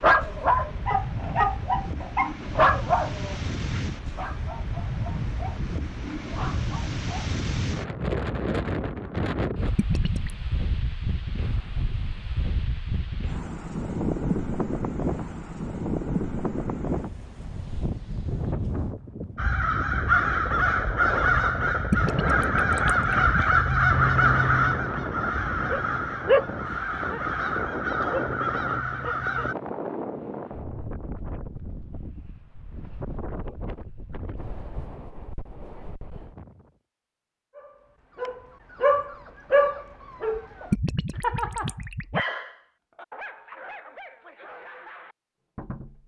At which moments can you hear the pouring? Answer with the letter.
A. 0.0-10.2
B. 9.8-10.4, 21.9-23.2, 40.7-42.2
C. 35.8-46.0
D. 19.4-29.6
B.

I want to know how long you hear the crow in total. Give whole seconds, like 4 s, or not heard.
10 s.